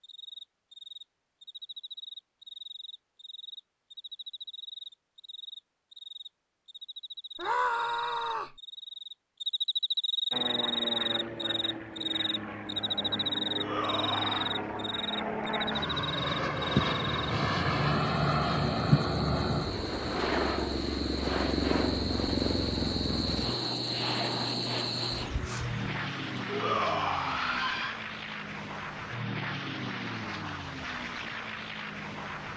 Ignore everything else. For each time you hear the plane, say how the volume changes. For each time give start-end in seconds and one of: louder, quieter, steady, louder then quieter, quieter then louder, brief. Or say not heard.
10.3-32.5 louder then quieter.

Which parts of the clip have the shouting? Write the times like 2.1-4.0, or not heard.
7.3-8.6, 13.6-14.5, 26.4-27.9.